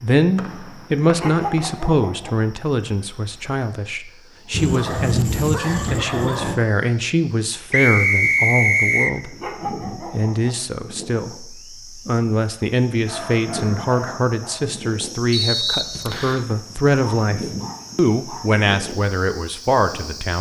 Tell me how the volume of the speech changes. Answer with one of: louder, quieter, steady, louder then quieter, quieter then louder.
steady.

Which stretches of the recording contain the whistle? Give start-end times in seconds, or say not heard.
0.3-1.8, 7.7-9.2, 15.3-16.4.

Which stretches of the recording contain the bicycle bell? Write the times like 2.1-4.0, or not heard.
not heard.